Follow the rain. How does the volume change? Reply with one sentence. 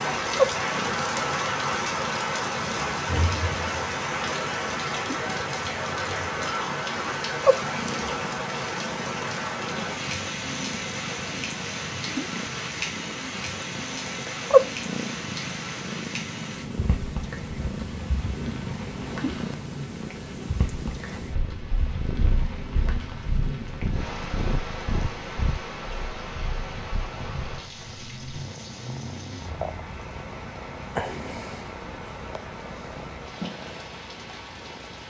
The volume of the rain goes down.